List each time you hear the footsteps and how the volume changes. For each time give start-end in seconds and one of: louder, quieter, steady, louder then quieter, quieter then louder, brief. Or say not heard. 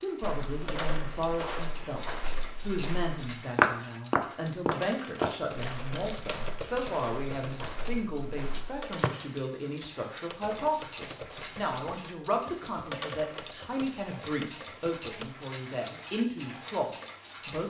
0.2-9.1 louder then quieter.